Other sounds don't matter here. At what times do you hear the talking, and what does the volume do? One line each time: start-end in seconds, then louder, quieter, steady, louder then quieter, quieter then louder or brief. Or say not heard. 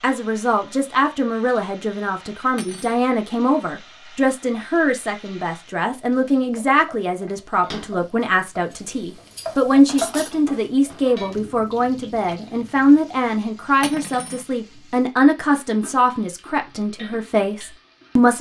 0.0-18.3 steady.